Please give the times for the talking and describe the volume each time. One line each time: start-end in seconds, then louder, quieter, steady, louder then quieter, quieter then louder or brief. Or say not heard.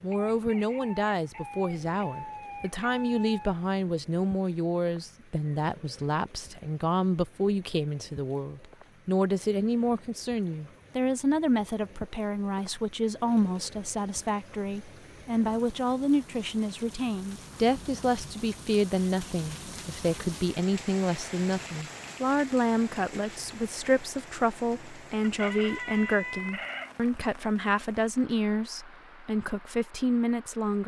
0.0-30.8 steady.